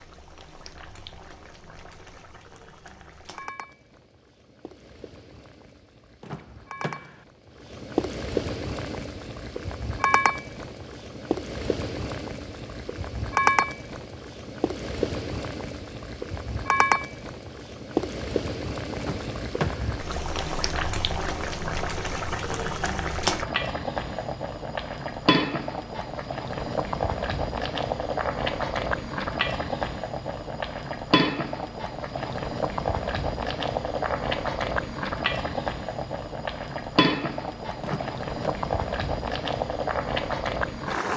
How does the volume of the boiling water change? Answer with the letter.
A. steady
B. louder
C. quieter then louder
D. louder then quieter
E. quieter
B.